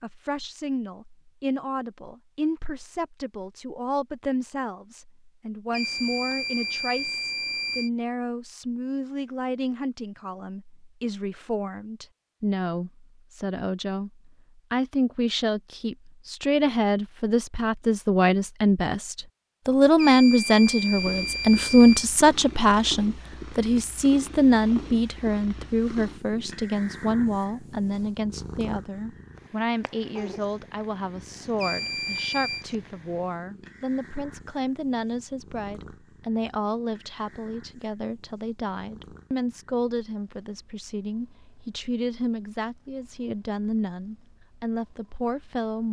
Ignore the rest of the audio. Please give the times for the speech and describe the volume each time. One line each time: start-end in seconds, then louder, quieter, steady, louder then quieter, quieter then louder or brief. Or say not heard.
0.0-45.8 louder then quieter.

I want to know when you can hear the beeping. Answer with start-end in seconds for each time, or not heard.
5.7-7.9, 19.9-22.1, 31.6-32.6.